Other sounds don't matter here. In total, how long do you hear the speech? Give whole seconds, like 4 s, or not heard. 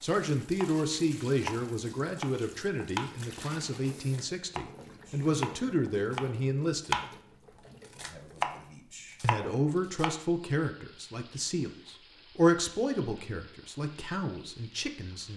13 s.